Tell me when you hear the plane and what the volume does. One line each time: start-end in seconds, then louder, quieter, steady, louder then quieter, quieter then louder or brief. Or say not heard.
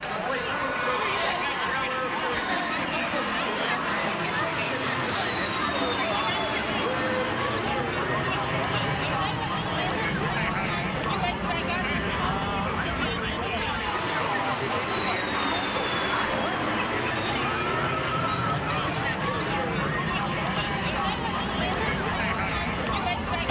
0.0-23.4 steady.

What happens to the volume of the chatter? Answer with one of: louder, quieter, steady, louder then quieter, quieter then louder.
steady.